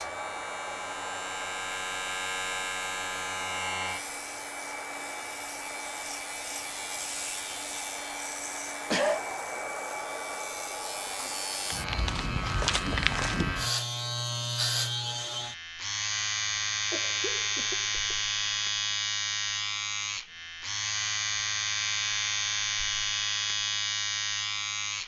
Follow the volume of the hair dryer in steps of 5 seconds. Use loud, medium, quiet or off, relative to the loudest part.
loud, loud, loud, off, off.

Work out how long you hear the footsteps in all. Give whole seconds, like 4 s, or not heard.
2 s.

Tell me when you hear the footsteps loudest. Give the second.
13 s.